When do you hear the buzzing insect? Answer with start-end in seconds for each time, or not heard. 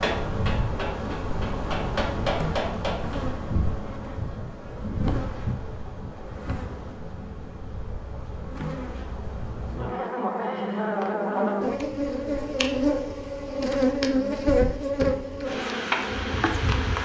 0.0-17.0.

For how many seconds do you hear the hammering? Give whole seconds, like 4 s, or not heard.
3 s.